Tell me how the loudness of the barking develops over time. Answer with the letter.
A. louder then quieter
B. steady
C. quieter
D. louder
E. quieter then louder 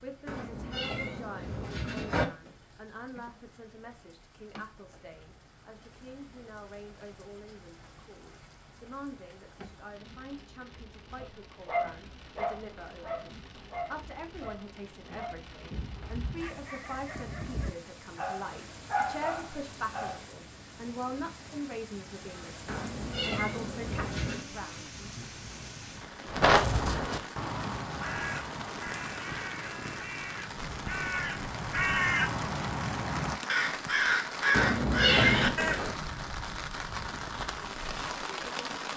E.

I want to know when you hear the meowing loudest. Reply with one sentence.
The volume of the meowing peaks at 35 seconds.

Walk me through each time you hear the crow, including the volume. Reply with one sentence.
The crow can be heard from 26.2 to 36.0 s, getting quieter then louder.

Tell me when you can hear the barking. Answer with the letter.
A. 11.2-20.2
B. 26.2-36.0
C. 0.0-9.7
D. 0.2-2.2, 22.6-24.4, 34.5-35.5
A.